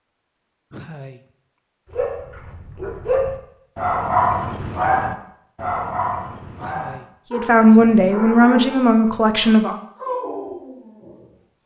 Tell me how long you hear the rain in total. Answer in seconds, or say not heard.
not heard.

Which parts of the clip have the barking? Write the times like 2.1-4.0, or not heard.
1.9-11.3.